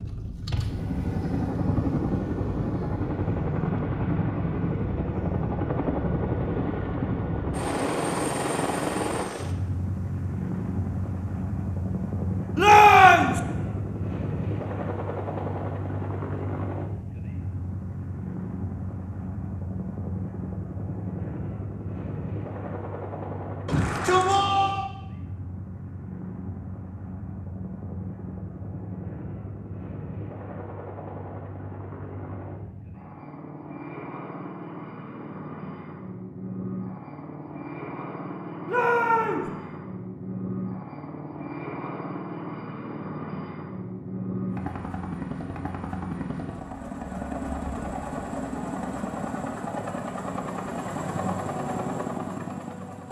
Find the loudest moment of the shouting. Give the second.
13 s.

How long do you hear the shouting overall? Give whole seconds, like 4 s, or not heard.
3 s.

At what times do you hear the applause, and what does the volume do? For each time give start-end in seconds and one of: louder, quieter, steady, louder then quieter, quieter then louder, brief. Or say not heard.
not heard.